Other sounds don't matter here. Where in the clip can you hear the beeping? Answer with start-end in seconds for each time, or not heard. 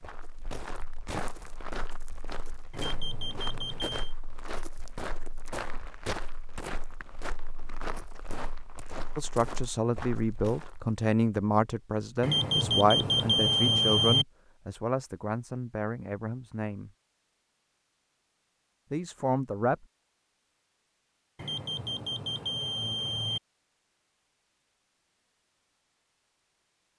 2.7-4.2, 12.2-14.2, 21.4-23.4.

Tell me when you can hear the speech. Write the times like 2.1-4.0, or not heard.
9.2-16.9, 18.9-19.9.